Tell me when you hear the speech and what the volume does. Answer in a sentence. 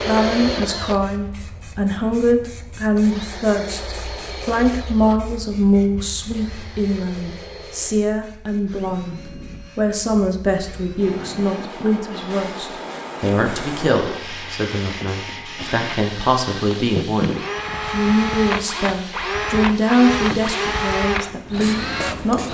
You can hear the speech from 0.0 to 22.4 s, at a steady volume.